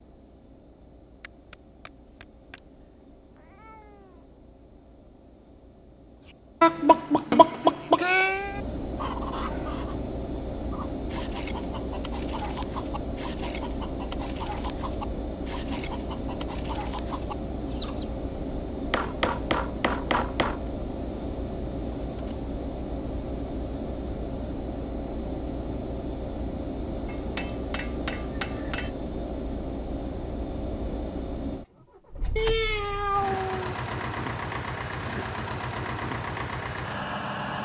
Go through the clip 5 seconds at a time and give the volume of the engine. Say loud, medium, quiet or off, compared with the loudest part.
quiet, medium, loud, loud, loud, loud, loud, loud.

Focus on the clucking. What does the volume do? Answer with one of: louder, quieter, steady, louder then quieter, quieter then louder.
quieter.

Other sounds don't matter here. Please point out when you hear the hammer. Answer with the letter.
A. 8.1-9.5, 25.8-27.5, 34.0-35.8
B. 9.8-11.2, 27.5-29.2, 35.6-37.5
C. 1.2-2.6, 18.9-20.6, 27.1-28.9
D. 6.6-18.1
C.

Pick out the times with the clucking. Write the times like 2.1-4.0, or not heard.
6.6-18.1.